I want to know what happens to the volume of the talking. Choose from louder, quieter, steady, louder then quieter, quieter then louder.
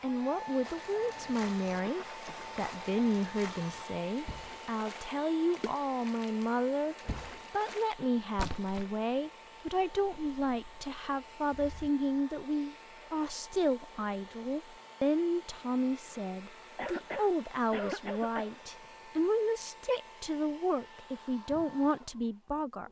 steady.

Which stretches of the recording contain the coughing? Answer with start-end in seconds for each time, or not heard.
1.8-2.5, 16.8-18.5.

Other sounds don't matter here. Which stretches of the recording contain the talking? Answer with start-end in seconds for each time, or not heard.
0.0-22.8.